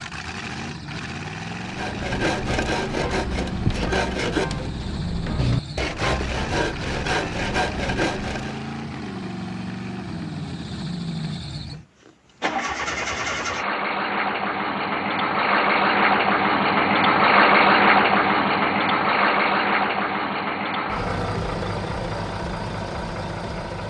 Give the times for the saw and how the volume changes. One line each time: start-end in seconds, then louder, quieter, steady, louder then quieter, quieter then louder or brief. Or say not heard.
1.6-8.6 steady.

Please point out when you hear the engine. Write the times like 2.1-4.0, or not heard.
0.0-23.8.